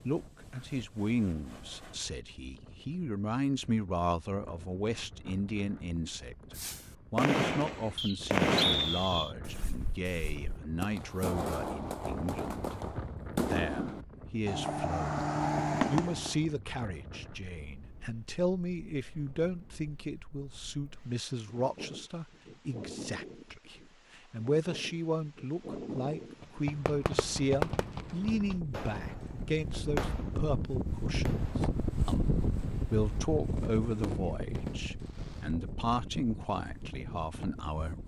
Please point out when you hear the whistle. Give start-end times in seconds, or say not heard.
8.0-9.3.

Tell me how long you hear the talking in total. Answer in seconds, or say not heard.
37 s.